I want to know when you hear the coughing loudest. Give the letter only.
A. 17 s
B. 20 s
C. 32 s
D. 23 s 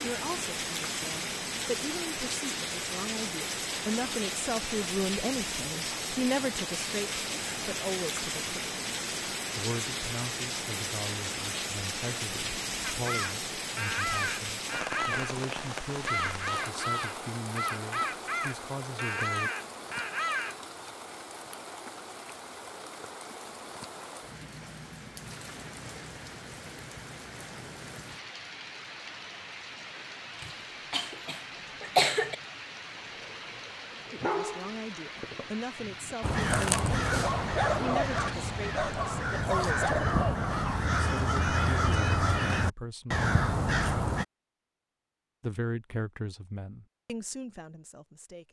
C.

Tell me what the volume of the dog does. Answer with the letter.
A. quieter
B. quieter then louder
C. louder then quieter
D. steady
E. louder
E.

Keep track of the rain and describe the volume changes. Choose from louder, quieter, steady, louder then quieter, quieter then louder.
quieter.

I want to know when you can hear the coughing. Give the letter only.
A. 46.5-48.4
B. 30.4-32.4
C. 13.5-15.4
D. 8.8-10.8
B.